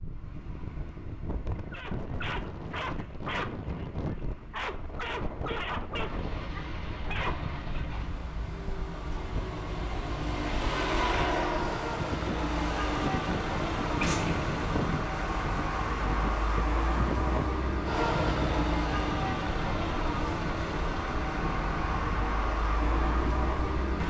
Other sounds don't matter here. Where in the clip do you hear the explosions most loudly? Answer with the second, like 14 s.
14 s.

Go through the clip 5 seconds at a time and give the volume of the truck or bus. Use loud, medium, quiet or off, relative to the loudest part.
quiet, medium, loud, loud, loud.